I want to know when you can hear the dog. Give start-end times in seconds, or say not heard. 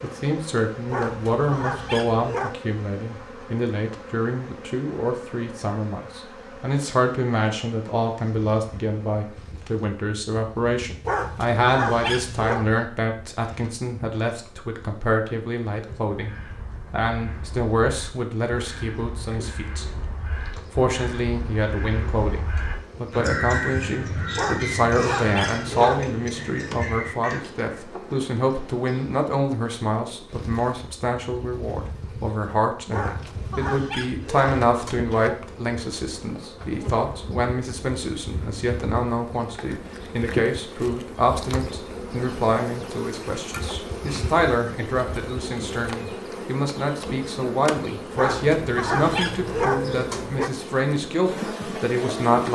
0.8-2.6, 11.0-12.7, 24.4-26.1, 32.9-35.2, 48.1-50.5.